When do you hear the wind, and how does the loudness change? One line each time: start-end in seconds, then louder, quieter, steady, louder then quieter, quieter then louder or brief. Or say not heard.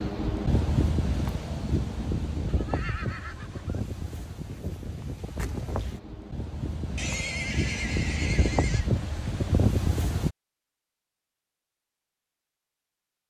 0.0-10.3 quieter then louder.